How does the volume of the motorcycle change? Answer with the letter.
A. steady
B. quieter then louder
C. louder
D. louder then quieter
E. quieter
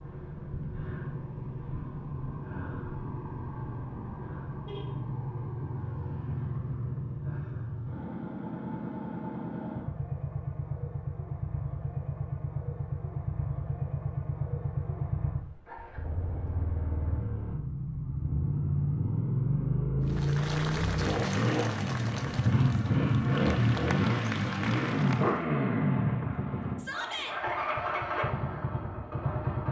C.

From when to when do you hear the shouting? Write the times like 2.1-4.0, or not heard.
26.8-27.4.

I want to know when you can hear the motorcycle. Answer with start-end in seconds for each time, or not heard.
0.0-29.6.